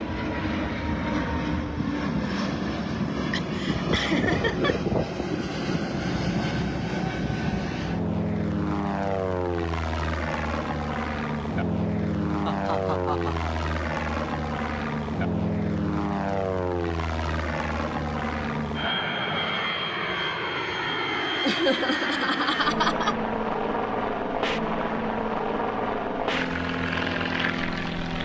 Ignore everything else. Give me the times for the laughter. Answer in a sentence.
The laughter can be heard from 3.3 to 4.8 s, from 12.4 to 13.5 s and from 21.4 to 23.1 s.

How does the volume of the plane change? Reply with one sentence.
The volume of the plane stays about the same.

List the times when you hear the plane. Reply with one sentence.
You can hear the plane from 0.0 to 28.2 s.